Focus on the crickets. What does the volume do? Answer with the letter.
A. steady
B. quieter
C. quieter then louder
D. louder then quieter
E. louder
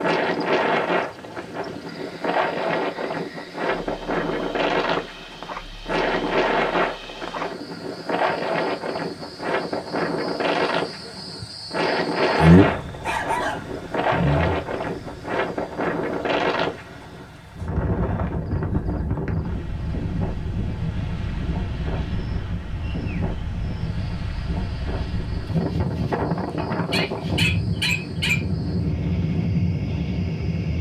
D.